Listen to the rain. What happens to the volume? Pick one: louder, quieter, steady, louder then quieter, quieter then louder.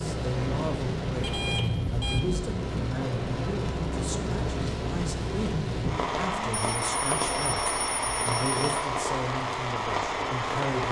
steady.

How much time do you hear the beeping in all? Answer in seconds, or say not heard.
3 s.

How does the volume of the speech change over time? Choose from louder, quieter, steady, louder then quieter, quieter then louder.
steady.